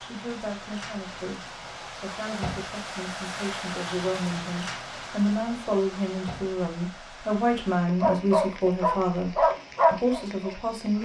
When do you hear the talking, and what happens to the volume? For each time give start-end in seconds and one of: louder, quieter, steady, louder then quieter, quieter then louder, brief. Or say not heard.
0.0-11.0 louder.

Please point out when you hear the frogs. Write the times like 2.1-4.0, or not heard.
not heard.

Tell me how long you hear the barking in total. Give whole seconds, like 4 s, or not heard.
3 s.